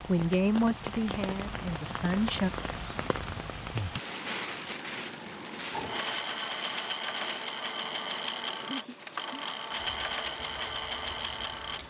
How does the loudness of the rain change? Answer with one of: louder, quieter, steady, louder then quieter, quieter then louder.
quieter.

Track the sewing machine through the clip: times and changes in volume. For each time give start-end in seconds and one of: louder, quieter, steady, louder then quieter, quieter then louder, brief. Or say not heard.
5.7-11.8 steady.